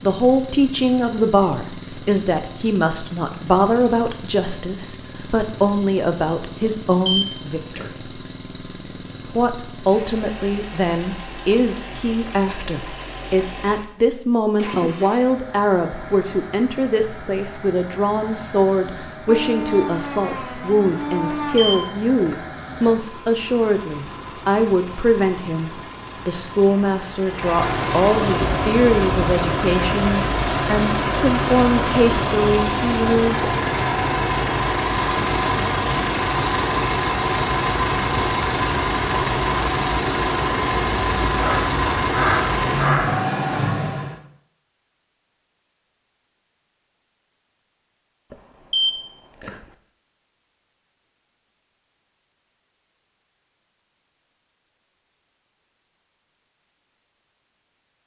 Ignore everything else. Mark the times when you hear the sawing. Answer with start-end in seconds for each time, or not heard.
19.2-21.9, 41.3-43.2.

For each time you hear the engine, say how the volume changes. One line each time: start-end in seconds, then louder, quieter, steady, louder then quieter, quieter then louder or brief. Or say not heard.
0.0-44.2 louder.